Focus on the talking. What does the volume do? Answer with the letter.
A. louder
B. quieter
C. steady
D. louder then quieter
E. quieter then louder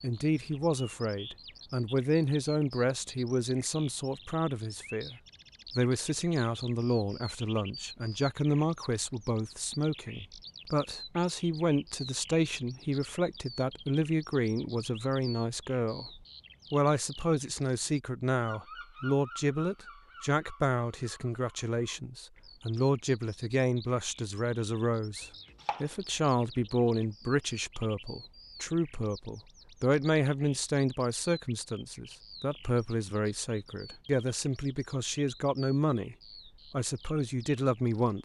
C.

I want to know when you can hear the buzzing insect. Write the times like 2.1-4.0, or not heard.
not heard.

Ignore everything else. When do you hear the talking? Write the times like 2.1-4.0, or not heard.
0.0-38.2.